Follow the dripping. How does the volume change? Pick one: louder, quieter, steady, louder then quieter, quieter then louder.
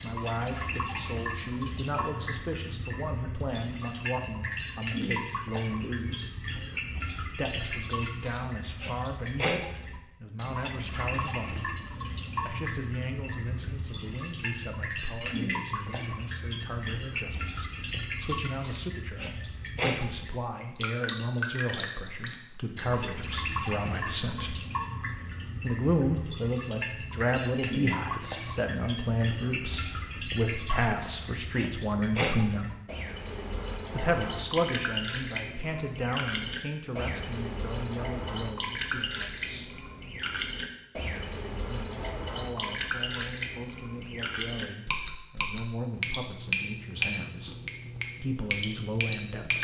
steady.